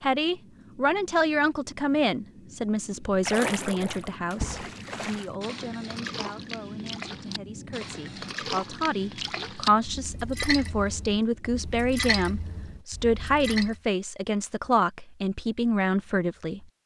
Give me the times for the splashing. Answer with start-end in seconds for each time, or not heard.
3.0-13.8.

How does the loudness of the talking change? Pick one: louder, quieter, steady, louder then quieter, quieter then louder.
quieter then louder.